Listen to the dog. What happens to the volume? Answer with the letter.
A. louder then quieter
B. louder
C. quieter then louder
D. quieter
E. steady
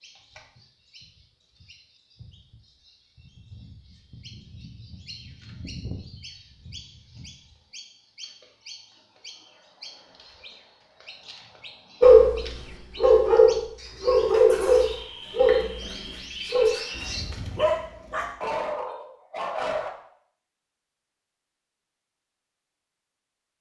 D.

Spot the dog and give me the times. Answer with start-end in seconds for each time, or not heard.
12.0-19.9.